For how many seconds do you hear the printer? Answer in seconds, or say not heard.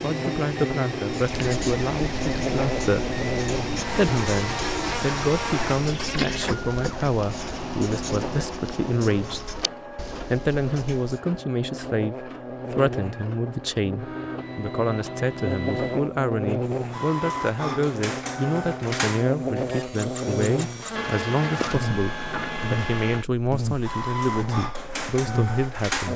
26 s.